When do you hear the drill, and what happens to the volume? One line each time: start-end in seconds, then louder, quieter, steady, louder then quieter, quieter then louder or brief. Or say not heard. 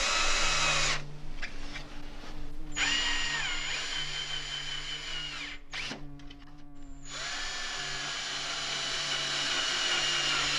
0.0-10.5 quieter then louder.